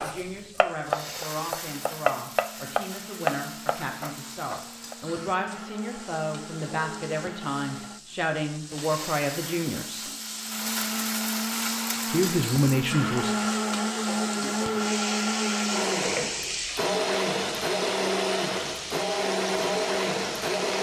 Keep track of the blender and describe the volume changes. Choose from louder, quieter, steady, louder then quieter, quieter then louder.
louder.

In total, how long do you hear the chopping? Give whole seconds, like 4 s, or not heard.
5 s.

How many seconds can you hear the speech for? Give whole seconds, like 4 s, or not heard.
11 s.